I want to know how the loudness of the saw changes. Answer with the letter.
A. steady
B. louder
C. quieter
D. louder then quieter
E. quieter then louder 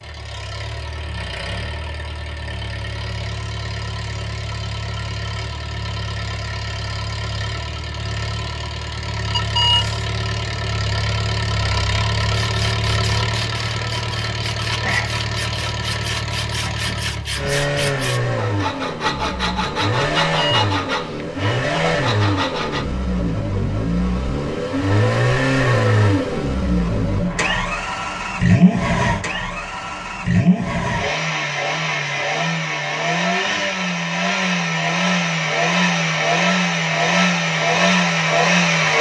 B.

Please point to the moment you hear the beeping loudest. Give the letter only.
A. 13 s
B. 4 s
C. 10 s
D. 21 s
C.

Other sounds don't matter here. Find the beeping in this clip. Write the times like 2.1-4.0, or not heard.
9.3-10.1, 20.2-20.7.